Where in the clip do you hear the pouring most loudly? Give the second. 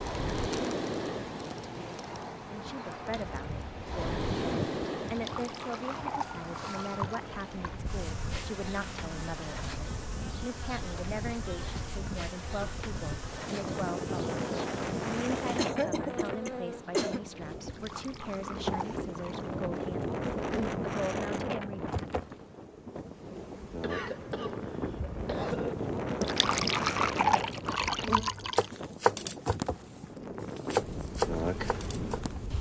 27 s.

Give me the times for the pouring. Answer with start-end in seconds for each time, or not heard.
5.0-7.8, 17.6-19.5, 26.2-28.6.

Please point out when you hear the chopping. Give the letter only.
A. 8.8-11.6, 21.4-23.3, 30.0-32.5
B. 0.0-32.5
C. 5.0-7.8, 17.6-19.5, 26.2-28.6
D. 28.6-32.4
D.